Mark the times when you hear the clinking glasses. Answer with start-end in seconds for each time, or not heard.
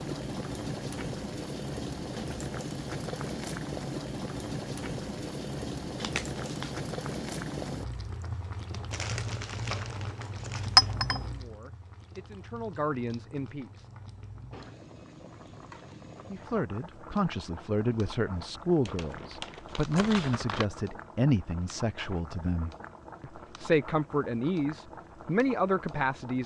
10.8-11.2.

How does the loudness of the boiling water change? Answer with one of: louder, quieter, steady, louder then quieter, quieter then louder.
quieter.